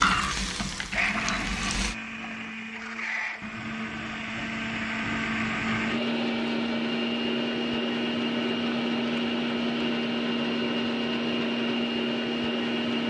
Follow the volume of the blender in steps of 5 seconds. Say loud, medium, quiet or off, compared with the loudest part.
medium, loud, loud.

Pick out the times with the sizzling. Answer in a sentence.
The sizzling can be heard from 0.0 to 1.9 s.